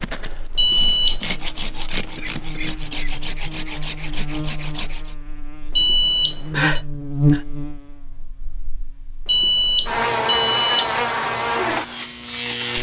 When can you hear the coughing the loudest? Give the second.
7 s.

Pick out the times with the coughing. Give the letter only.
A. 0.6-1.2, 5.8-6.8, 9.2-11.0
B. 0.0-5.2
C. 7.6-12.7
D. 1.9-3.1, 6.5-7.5
D.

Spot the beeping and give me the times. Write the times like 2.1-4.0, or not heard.
0.6-1.2, 5.8-6.8, 9.2-11.0.